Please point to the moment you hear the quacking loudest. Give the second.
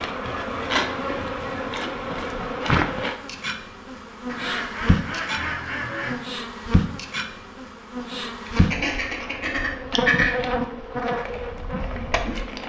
10 s.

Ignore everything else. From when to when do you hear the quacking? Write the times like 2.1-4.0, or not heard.
0.3-2.5, 4.2-6.2, 8.4-10.3.